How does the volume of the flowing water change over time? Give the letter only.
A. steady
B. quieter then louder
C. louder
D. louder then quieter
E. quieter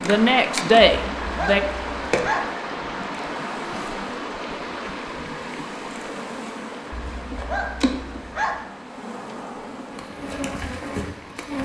E.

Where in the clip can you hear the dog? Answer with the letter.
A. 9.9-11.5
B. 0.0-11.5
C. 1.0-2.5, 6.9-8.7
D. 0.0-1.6
C.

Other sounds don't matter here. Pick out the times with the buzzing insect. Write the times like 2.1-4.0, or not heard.
0.0-11.5.